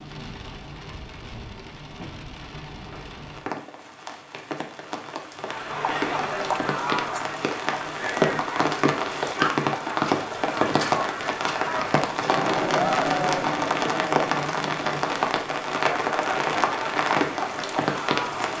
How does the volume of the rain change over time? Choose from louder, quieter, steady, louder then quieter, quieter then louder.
louder.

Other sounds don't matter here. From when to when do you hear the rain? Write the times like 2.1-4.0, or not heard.
0.0-18.5.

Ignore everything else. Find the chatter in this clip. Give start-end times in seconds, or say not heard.
5.5-18.5.